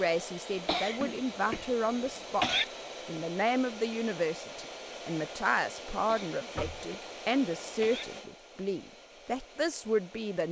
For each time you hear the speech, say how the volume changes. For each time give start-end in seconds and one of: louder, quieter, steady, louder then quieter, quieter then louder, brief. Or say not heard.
0.0-2.5 brief
3.0-10.4 steady.